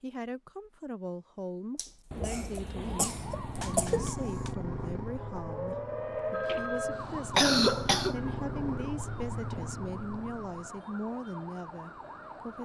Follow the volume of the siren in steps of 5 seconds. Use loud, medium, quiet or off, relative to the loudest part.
medium, loud, medium.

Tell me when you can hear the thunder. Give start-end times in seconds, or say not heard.
2.1-4.1.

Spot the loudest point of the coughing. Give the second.
8 s.